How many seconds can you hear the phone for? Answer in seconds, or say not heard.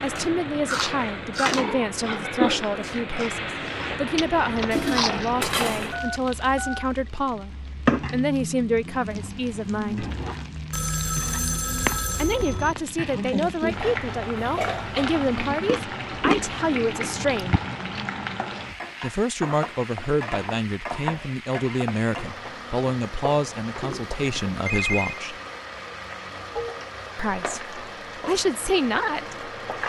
4 s.